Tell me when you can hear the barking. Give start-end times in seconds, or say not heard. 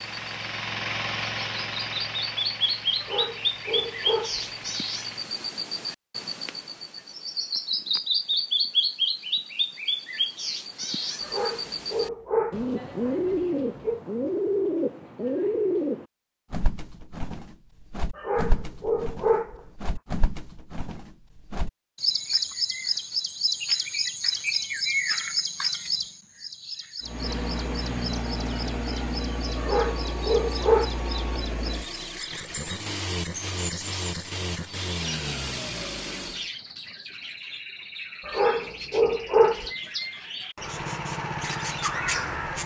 3.0-4.5, 11.2-14.0, 18.1-19.6, 29.6-30.9, 38.2-39.7.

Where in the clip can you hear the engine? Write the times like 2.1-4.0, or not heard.
0.0-5.4, 27.0-36.5, 40.6-42.6.